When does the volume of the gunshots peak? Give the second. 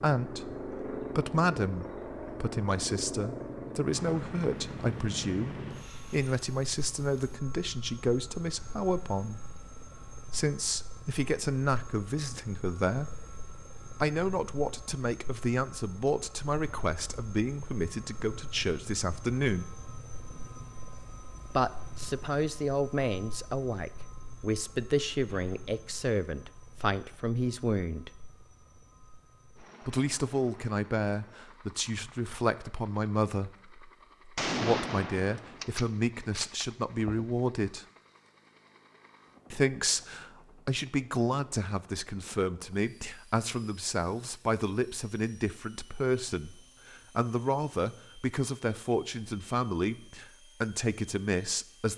35 s.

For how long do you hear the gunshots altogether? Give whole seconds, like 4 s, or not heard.
3 s.